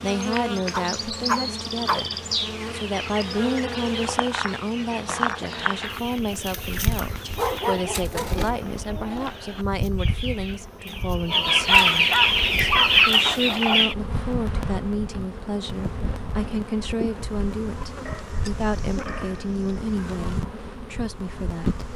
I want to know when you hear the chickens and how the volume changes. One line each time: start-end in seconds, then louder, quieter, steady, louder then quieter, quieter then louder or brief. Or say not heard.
2.4-13.9 louder.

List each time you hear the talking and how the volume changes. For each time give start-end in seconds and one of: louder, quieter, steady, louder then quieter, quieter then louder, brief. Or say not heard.
0.0-2.1 brief
2.7-21.9 steady.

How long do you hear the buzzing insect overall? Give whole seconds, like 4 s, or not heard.
22 s.